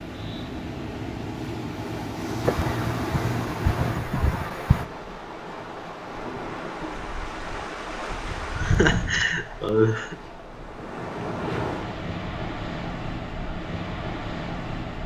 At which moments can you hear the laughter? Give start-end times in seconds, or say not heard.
2.5-4.8, 8.6-10.2.